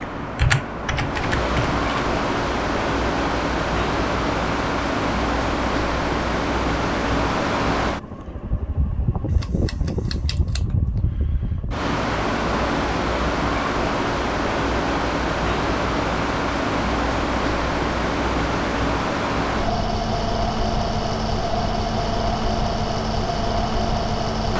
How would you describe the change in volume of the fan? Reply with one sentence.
The volume of the fan stays about the same.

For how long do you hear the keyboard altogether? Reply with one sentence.
You can hear the keyboard for 2 seconds altogether.